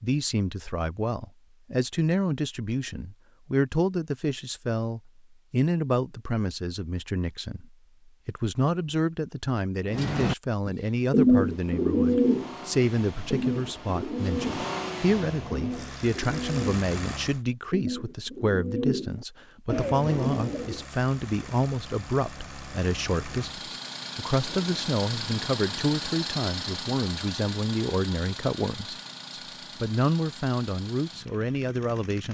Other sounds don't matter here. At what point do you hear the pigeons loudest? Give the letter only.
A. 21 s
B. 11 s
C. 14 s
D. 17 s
B.